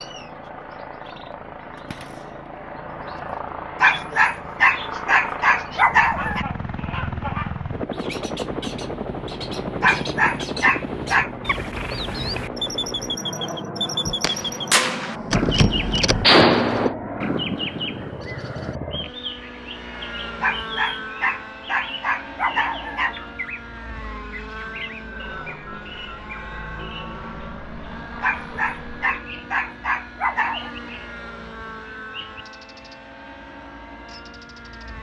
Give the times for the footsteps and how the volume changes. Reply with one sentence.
The footsteps can't be heard in this clip.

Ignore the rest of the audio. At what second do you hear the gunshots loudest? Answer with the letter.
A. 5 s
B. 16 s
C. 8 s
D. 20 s
B.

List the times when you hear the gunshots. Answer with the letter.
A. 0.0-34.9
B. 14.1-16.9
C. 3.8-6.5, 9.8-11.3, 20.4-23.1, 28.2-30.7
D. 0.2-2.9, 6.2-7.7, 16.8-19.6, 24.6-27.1
B.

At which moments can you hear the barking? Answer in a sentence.
The barking can be heard from 3.8 to 6.5 s, from 9.8 to 11.3 s, from 20.4 to 23.1 s and from 28.2 to 30.7 s.